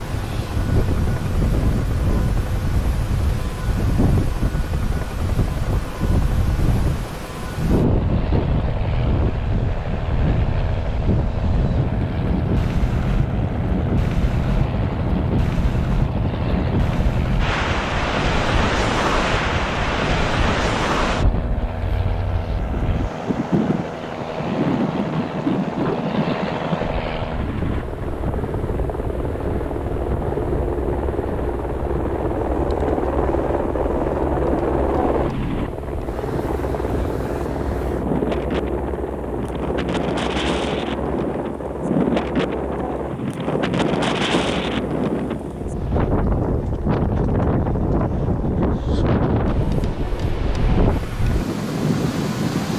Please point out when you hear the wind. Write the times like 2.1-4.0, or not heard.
0.0-52.7.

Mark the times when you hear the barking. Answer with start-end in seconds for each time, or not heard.
not heard.